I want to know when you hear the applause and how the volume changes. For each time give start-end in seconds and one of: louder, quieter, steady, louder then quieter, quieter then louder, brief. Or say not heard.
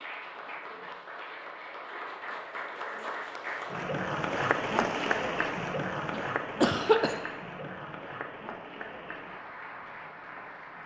0.0-10.8 louder then quieter.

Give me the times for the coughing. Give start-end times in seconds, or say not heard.
6.1-7.2.